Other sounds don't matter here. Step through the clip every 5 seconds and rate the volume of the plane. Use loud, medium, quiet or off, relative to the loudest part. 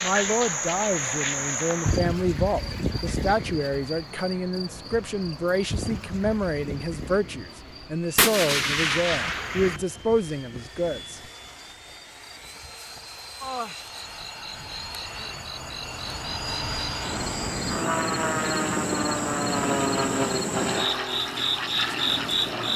quiet, quiet, quiet, loud, loud.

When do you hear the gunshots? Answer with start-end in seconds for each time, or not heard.
8.2-9.8.